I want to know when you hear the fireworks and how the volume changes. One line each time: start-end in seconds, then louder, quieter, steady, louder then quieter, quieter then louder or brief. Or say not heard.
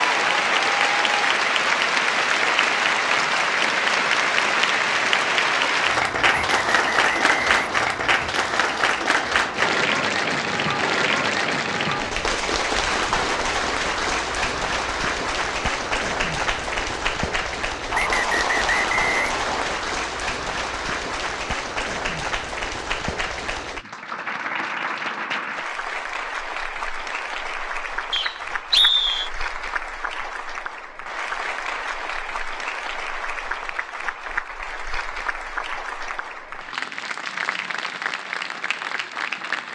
not heard.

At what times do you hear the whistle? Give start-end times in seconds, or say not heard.
6.2-7.8, 17.9-19.8, 28.1-29.3.